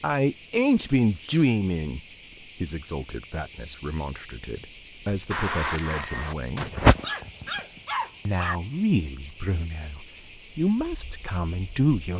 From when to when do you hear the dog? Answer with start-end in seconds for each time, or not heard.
6.5-8.6.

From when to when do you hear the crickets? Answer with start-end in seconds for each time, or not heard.
0.0-12.1.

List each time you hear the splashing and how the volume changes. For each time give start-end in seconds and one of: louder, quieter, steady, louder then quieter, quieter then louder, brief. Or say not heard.
not heard.